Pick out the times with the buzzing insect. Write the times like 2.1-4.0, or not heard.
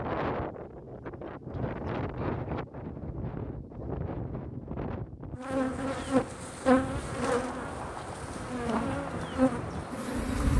5.3-10.5.